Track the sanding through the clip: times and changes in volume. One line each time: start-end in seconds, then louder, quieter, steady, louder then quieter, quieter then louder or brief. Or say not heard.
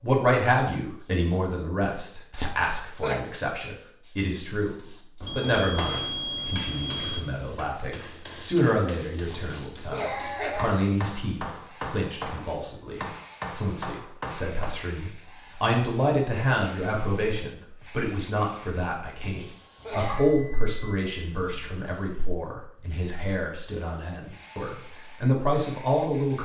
not heard.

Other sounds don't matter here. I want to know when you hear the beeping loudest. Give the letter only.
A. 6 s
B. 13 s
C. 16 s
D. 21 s
A.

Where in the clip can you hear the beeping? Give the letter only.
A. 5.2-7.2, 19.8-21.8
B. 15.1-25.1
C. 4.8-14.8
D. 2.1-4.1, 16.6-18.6
A.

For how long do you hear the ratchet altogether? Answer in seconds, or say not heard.
not heard.